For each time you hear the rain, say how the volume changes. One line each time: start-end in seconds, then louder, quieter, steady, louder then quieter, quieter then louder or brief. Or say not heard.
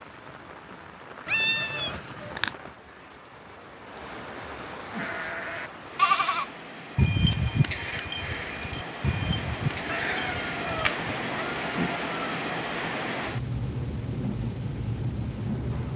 0.0-15.9 louder.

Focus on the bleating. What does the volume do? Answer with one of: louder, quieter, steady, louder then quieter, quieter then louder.
quieter.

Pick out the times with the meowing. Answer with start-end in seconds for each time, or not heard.
1.2-2.5, 9.8-12.4.